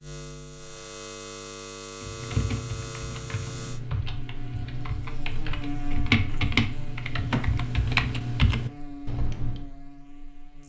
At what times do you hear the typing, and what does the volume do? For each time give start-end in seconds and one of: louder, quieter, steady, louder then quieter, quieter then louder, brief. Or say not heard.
2.0-9.7 louder.